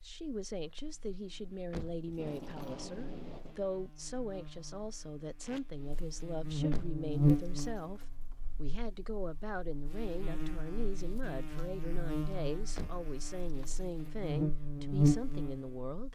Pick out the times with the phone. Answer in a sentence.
The phone can't be heard in this clip.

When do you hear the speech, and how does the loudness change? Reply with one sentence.
The speech can be heard from 0.0 to 16.1 s, at a steady volume.